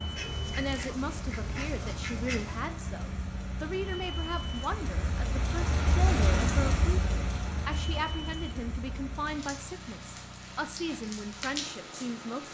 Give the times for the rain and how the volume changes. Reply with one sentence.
The rain can be heard from 0.0 to 12.4 s, getting louder then quieter.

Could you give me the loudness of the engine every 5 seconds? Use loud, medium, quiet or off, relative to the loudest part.
loud, loud, medium.